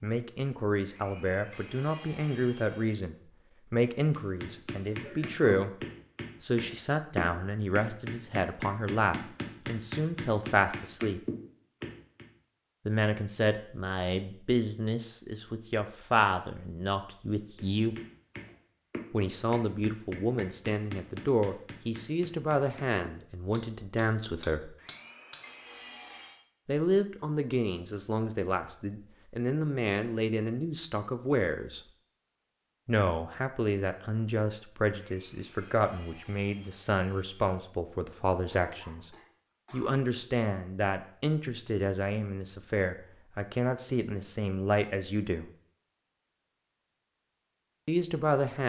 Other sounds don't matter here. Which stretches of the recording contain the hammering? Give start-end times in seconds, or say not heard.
4.1-12.2, 17.6-25.4.